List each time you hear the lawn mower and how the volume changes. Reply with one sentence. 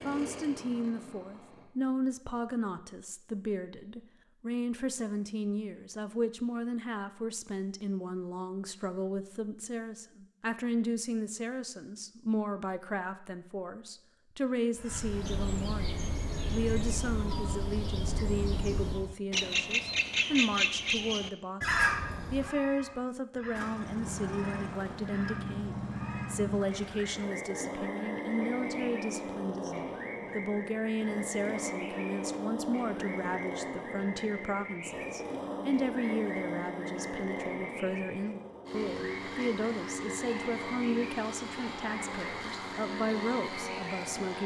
You can hear the lawn mower briefly from 0.0 to 1.6 s; and from 23.6 to 44.4 s, at a steady volume.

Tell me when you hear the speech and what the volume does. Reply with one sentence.
The speech can be heard from 0.0 to 44.4 s, at a steady volume.